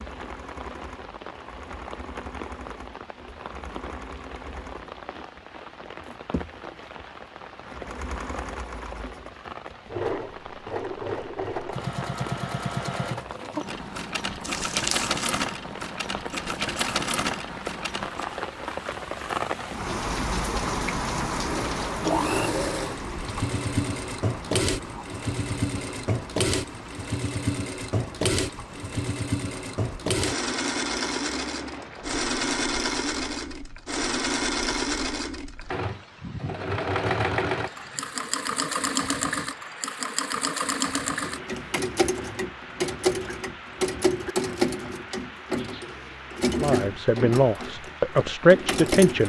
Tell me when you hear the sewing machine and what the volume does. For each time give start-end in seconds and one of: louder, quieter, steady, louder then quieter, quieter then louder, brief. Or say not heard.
0.0-18.4 louder
21.4-49.2 steady.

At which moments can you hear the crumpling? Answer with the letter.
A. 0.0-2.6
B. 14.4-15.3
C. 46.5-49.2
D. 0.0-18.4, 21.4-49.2
B.